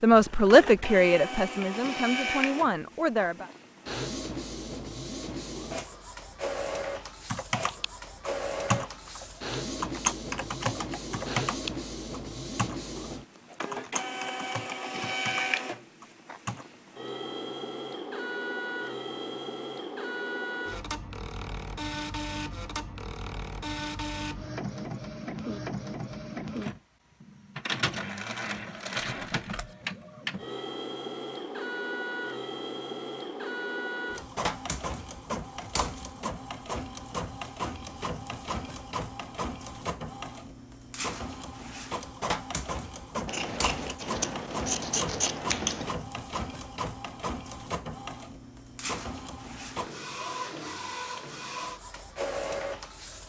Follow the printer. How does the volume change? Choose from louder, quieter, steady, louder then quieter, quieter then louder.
steady.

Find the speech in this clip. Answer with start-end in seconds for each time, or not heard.
0.0-3.5.